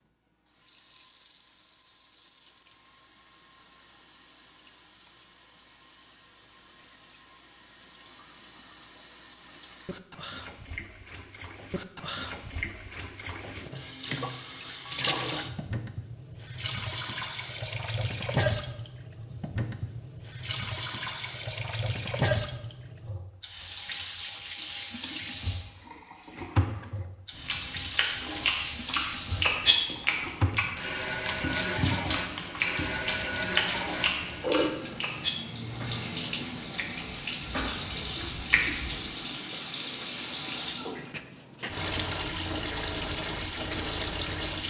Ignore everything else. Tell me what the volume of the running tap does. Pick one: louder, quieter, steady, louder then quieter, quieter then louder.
louder.